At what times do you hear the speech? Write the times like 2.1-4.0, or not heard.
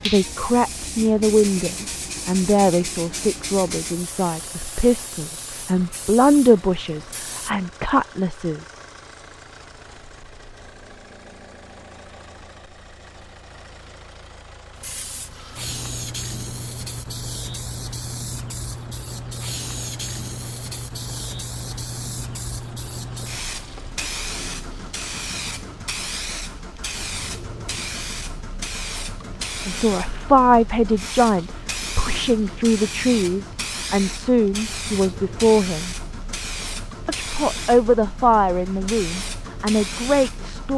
0.0-8.6, 29.6-36.0, 37.0-40.7.